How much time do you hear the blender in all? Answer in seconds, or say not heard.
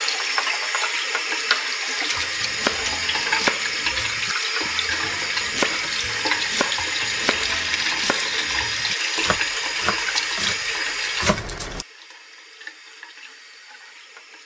not heard.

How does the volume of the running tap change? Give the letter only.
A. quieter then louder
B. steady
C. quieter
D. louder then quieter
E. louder
C.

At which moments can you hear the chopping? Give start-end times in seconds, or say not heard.
2.1-11.7.